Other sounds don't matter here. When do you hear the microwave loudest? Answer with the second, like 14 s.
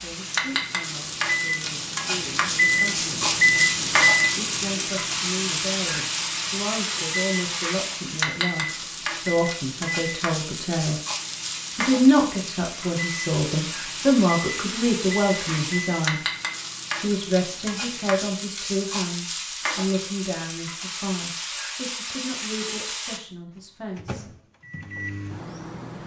4 s.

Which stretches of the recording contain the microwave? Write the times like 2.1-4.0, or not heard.
0.0-18.3, 23.6-26.0.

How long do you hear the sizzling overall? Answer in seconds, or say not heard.
23 s.